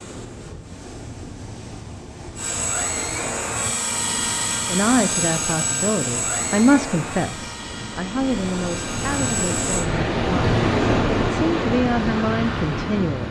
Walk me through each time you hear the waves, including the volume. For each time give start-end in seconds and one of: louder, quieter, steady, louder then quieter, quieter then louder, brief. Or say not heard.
0.0-13.2 louder.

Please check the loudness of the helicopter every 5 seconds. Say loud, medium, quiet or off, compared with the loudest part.
loud, loud, off.